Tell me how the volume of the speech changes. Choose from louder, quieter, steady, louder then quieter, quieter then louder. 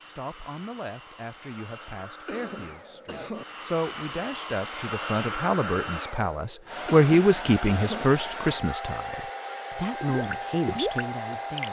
louder then quieter.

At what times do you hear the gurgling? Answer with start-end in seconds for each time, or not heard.
10.1-11.6.